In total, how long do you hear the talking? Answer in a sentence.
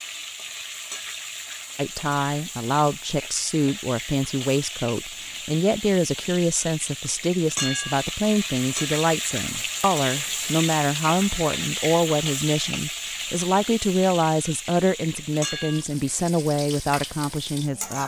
The talking can be heard for 16 seconds in total.